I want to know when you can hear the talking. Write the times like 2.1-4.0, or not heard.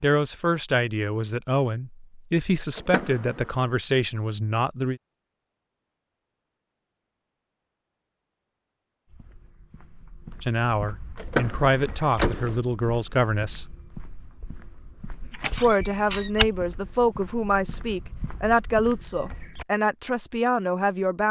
0.0-5.0, 10.4-13.7, 15.6-21.2.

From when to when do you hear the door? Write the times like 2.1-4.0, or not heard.
2.8-3.5, 11.2-12.6, 15.3-16.3.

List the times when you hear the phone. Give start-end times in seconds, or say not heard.
not heard.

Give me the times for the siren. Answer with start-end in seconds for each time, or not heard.
not heard.